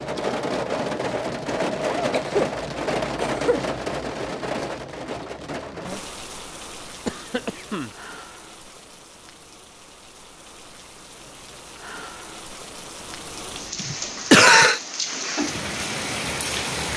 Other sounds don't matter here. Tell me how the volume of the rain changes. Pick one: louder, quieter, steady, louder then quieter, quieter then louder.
quieter then louder.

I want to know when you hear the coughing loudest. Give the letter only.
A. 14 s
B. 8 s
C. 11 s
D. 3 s
A.